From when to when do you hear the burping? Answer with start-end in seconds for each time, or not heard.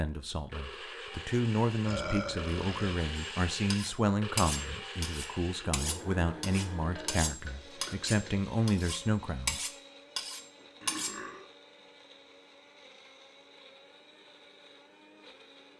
1.9-3.0, 6.8-8.4, 10.8-11.5.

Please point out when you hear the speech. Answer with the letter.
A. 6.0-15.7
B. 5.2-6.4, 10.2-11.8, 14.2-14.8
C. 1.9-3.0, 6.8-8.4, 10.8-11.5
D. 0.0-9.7
D.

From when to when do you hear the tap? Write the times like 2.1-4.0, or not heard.
not heard.